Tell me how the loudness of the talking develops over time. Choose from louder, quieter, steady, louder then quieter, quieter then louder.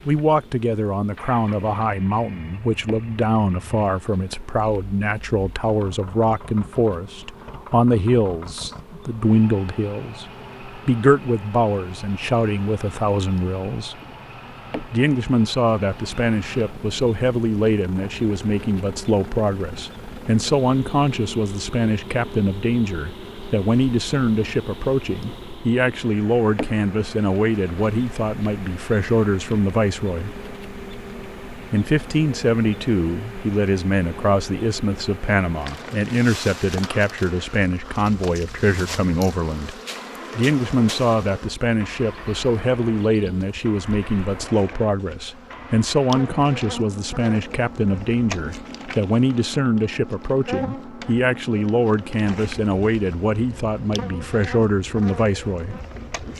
steady.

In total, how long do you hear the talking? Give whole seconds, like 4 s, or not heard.
53 s.